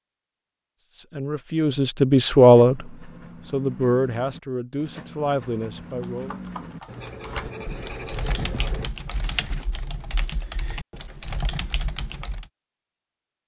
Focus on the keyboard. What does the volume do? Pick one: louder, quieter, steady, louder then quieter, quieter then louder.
louder.